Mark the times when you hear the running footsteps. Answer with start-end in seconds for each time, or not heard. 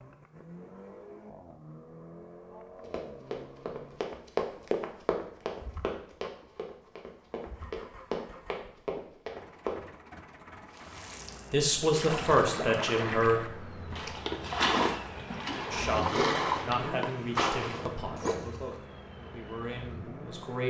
2.8-9.8.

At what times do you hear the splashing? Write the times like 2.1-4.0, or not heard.
10.7-18.8.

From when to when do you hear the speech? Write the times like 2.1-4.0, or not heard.
11.5-13.5, 15.7-20.6.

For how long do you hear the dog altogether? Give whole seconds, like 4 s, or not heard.
not heard.